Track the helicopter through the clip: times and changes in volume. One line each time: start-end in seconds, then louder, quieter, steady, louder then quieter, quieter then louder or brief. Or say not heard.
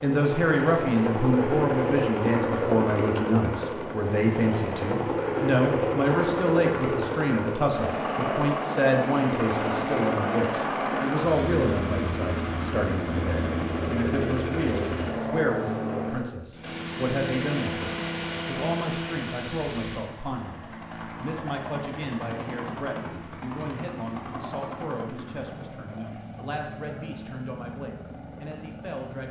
0.0-29.2 quieter.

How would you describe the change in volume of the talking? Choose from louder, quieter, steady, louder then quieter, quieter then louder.
quieter.